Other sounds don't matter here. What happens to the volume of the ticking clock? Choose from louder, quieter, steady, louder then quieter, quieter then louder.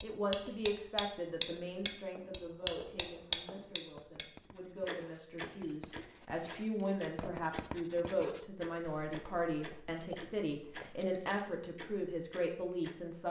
quieter.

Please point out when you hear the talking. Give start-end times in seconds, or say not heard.
0.0-13.2.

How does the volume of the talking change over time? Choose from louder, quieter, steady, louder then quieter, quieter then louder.
quieter then louder.